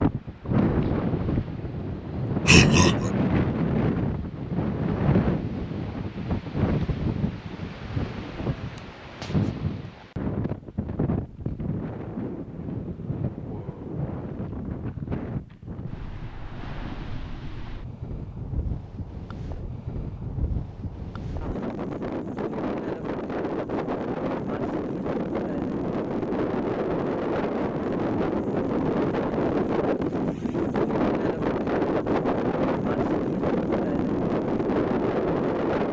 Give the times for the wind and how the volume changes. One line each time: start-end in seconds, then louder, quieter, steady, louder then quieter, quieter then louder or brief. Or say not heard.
0.0-35.8 quieter then louder.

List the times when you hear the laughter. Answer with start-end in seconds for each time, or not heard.
2.5-3.1.